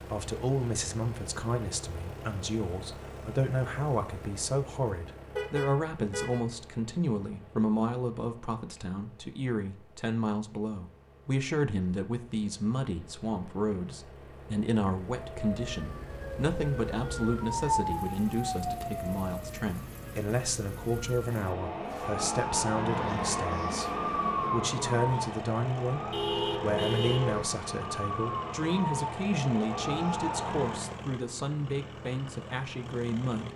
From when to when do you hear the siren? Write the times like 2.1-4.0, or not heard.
15.2-31.1.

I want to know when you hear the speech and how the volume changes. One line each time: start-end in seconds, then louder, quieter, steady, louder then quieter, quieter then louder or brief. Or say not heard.
0.1-33.5 steady.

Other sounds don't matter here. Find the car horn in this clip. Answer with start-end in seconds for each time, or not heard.
5.3-6.4, 26.1-27.4.